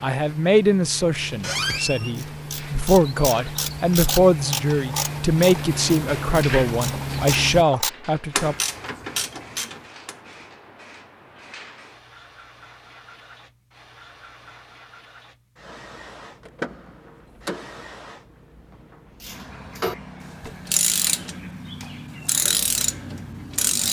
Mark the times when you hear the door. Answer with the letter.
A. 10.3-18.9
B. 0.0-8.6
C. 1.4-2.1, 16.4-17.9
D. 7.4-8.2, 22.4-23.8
C.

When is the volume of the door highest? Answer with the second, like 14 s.
2 s.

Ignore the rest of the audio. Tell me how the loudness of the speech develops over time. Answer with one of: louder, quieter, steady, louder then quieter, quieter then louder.
steady.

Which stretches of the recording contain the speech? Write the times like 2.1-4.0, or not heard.
0.0-8.6.